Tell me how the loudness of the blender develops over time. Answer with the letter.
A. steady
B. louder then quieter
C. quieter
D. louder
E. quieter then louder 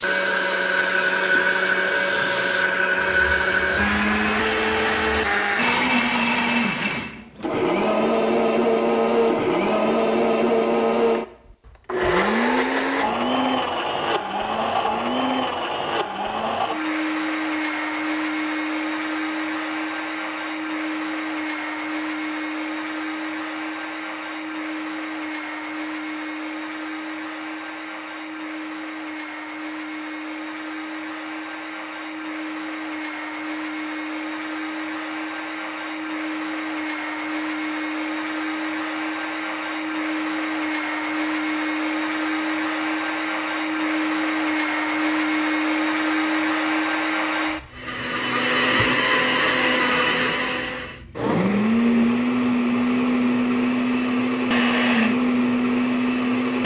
E.